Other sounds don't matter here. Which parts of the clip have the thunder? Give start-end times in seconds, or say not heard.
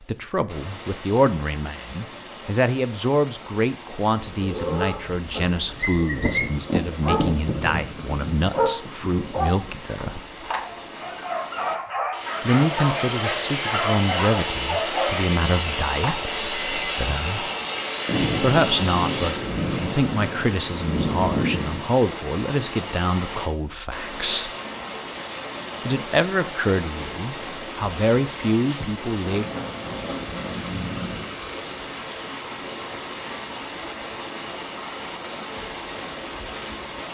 6.2-10.2, 18.1-21.9, 29.2-31.2.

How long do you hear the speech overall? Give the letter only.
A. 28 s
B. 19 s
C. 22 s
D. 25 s
D.